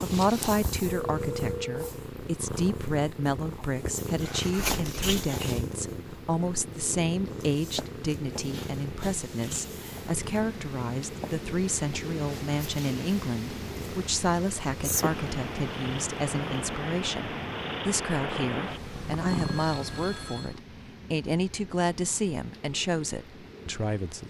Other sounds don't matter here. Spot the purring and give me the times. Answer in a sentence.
The purring can be heard from 0.0 to 20.6 s.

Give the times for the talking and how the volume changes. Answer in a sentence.
The talking can be heard from 0.0 to 24.2 s, at a steady volume.